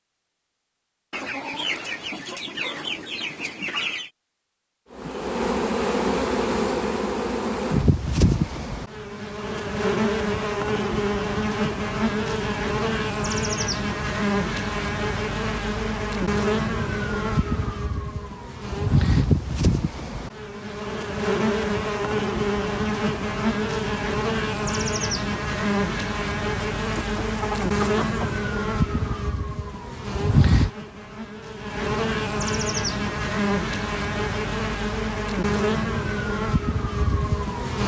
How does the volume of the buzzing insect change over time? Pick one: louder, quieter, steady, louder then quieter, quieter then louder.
steady.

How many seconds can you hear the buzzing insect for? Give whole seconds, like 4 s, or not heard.
33 s.